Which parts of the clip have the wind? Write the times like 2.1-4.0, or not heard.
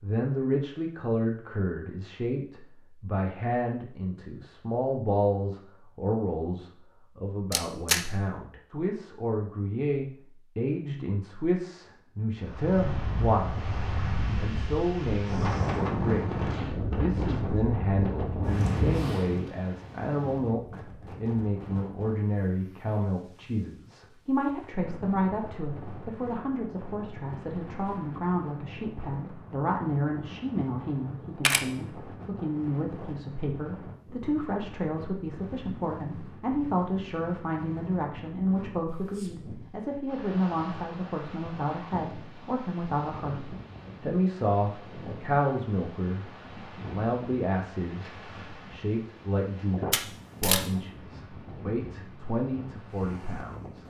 12.3-53.8.